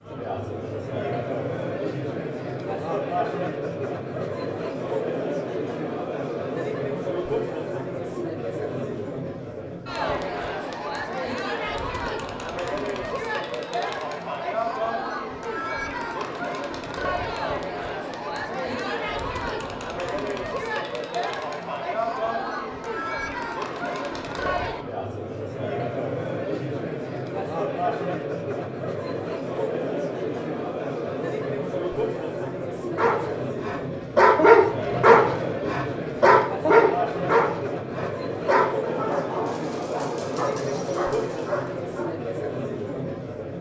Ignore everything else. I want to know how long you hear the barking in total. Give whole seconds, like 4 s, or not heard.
9 s.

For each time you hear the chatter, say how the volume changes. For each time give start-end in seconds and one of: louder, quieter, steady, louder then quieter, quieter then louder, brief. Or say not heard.
0.0-43.5 steady.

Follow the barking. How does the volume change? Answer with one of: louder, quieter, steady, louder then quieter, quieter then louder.
quieter.